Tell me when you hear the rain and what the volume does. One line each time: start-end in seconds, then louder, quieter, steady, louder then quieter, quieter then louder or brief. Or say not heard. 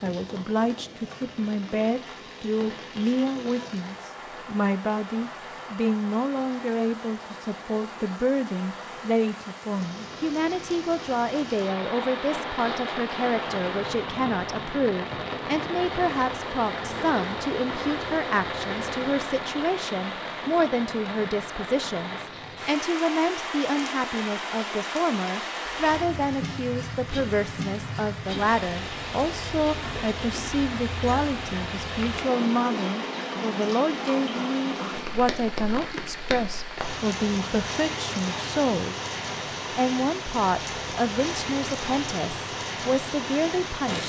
0.0-44.0 louder.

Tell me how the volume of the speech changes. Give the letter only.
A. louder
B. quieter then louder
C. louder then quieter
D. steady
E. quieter
D.